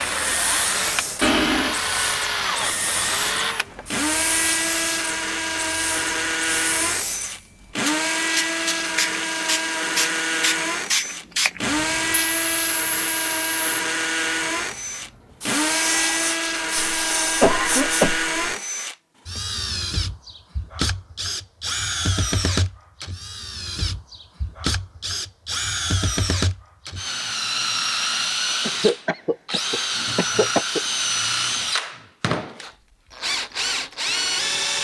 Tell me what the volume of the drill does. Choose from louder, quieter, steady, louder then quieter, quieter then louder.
steady.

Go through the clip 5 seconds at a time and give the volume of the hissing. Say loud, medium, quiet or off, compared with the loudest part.
loud, loud, loud, loud, off, off, off.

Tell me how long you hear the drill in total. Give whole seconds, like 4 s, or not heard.
35 s.